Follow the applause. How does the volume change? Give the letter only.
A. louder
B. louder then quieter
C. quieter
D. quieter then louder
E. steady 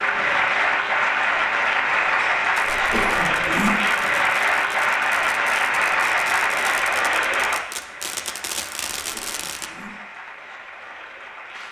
C.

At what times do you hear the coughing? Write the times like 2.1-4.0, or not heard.
2.6-3.7, 9.0-9.9.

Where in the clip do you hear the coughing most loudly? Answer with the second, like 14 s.
3 s.